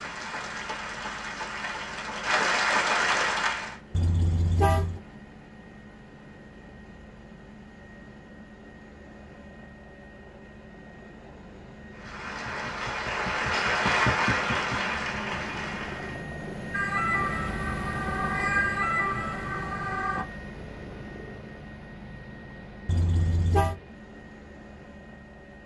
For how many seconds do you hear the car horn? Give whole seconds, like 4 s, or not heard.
2 s.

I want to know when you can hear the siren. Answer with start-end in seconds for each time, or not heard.
16.7-20.2.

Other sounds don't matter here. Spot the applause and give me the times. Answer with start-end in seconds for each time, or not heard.
0.0-3.8, 11.9-16.2.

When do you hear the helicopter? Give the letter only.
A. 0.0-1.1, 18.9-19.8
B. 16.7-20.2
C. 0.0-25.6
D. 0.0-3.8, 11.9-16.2
C.